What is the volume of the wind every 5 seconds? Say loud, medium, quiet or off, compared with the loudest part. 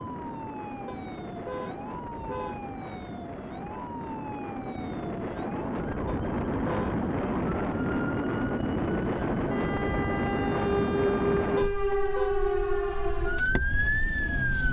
medium, loud, loud.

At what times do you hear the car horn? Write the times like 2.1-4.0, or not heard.
0.8-2.6, 6.0-7.0, 11.6-12.3.